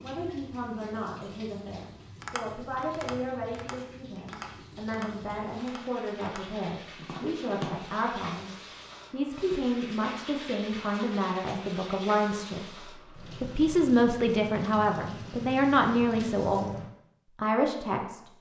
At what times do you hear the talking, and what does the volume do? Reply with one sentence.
You can hear the talking from 0.0 to 16.8 s, getting louder; and briefly from 17.4 to 18.3 s.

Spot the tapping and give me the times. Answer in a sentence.
The tapping can be heard from 2.2 to 7.8 s.